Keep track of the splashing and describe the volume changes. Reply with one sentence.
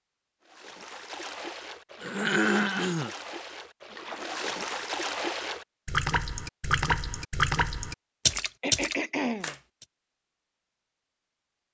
The volume of the splashing goes up.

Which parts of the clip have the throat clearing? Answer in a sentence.
The throat clearing can be heard from 2.0 to 3.1 s and from 8.6 to 9.6 s.